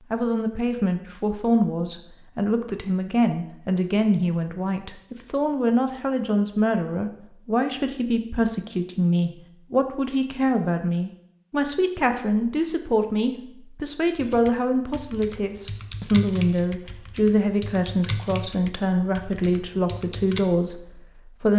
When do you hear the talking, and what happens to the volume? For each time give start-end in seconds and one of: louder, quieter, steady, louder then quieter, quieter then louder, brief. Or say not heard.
0.1-21.5 steady.